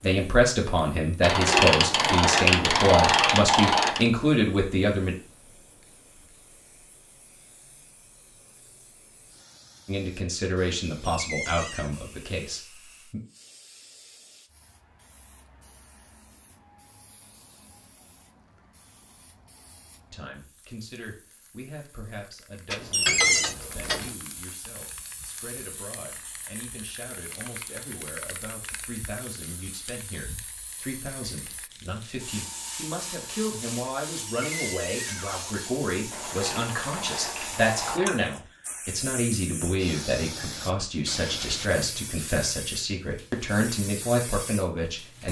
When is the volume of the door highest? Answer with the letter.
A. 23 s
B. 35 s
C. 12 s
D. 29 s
A.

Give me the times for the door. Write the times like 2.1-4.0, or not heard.
11.0-11.9, 22.9-23.6, 34.2-35.6.